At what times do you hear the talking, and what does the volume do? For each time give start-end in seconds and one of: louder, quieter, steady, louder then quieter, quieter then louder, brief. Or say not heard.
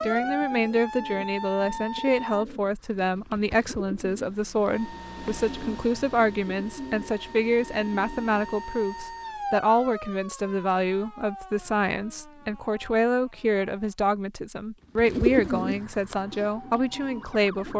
0.0-17.7 steady.